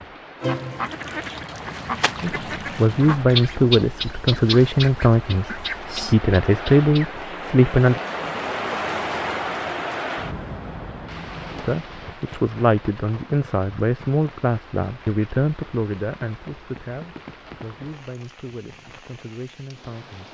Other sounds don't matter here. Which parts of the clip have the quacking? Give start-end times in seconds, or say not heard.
0.4-7.2.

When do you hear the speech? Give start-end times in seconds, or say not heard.
2.2-8.0, 11.6-20.2.